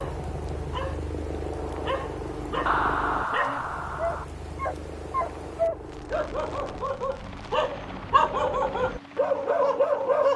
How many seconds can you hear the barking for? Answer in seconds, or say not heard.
10 s.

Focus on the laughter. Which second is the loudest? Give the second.
3 s.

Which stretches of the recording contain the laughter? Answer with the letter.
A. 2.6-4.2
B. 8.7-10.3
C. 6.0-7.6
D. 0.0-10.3
A.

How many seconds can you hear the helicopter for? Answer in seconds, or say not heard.
10 s.